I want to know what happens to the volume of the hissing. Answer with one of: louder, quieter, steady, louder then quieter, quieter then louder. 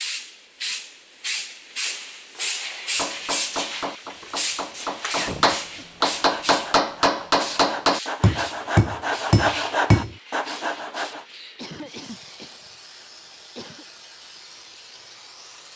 quieter.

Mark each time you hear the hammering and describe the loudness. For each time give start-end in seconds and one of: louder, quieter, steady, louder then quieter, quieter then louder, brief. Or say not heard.
2.9-10.2 louder.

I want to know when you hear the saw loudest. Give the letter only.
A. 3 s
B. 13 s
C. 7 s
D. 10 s
D.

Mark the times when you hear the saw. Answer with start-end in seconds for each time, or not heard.
5.7-11.2.